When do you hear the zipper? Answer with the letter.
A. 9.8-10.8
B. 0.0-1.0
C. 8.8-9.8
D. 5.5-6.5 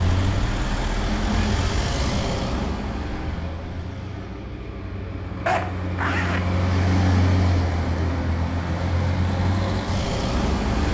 D.